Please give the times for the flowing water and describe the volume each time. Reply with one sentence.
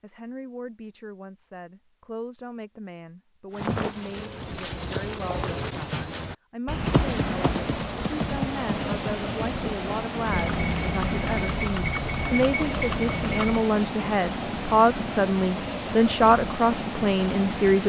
You can hear the flowing water from 6.7 to 17.8 s, at a steady volume.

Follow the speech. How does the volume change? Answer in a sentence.
The loudness of the speech goes up.